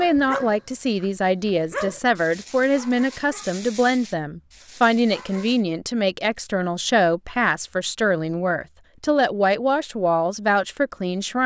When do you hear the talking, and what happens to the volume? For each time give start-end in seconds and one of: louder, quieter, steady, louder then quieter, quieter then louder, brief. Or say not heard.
0.0-11.4 steady.